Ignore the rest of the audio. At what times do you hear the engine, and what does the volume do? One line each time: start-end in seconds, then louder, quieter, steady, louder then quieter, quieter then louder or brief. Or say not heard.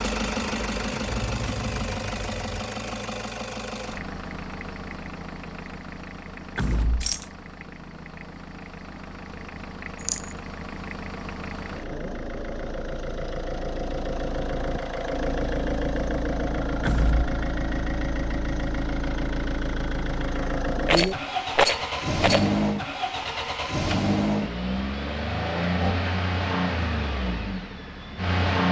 0.0-28.6 quieter then louder.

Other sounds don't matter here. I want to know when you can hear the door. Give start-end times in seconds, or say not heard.
6.5-7.2, 16.9-17.3.